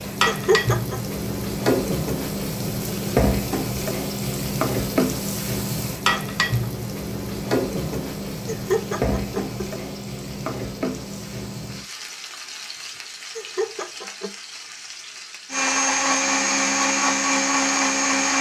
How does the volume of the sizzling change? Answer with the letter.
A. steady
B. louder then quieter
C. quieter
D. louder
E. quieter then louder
C.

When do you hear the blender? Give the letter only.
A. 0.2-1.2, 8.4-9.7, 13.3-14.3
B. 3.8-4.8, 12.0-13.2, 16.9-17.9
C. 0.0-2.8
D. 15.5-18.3
D.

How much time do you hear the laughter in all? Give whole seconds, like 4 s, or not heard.
3 s.